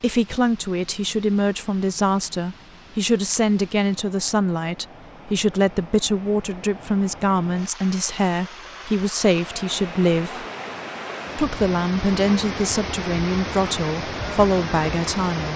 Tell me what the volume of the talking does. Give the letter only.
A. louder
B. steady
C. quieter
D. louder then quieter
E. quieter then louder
B.